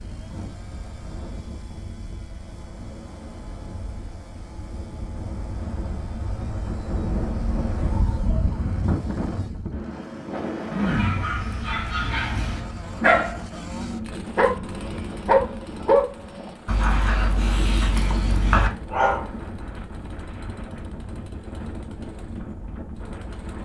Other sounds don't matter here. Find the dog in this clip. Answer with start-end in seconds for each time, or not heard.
10.7-19.2.